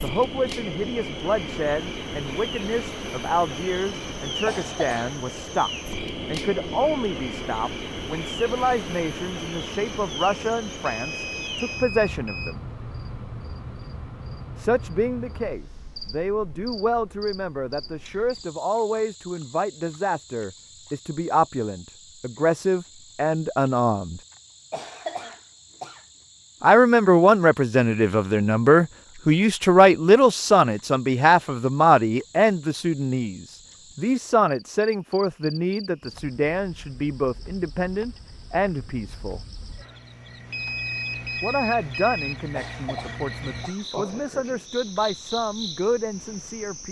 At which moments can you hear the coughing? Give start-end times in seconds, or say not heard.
4.5-5.2, 24.7-26.1, 42.5-43.9.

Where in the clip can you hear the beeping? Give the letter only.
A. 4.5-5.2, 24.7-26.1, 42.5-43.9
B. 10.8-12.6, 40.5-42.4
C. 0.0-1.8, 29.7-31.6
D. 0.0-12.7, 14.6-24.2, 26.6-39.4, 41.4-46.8
B.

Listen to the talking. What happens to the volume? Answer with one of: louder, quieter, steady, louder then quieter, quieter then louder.
louder then quieter.